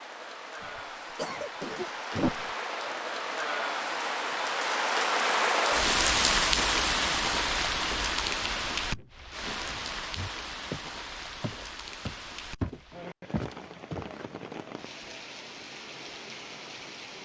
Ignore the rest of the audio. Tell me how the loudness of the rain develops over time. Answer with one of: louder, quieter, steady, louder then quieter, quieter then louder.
louder then quieter.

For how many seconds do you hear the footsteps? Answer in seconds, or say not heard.
5 s.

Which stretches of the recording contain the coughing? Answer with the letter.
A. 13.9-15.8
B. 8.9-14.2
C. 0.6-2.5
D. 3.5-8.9
C.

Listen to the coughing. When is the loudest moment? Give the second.
2 s.